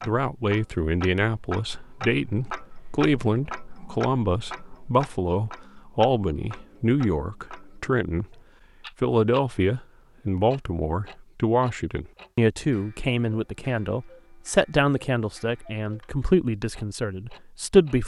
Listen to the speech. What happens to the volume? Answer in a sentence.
The loudness of the speech stays about the same.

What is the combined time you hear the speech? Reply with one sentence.
You can hear the speech for 17 seconds altogether.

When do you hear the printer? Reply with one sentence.
You can't hear the printer here.